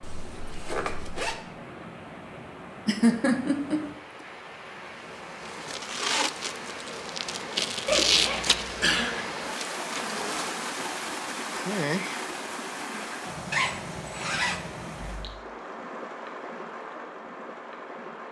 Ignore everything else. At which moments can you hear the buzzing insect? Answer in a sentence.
You can hear the buzzing insect from 5.0 to 13.3 s.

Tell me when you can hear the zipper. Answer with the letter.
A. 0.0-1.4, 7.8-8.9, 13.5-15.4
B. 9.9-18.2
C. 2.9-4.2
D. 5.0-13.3
A.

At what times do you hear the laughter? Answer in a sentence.
You can hear the laughter from 2.9 to 4.2 s.